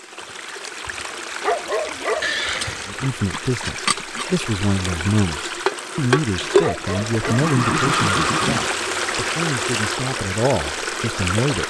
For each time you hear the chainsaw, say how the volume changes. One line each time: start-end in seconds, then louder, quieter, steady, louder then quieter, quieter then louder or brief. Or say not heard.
not heard.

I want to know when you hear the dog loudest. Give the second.
2 s.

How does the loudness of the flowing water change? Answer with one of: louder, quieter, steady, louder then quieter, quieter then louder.
louder.